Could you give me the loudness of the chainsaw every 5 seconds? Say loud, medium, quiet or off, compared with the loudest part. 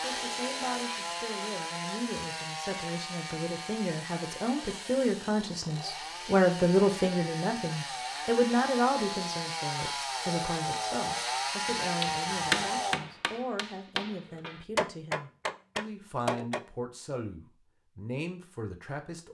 medium, medium, loud, off.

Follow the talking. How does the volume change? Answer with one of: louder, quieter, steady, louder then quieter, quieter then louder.
louder then quieter.